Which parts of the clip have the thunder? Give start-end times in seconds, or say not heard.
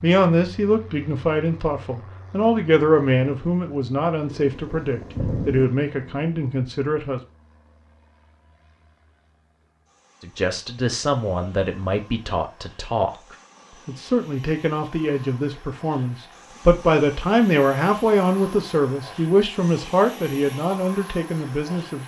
4.3-5.7.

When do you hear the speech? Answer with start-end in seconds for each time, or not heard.
0.0-7.2, 10.2-13.1, 13.8-22.0.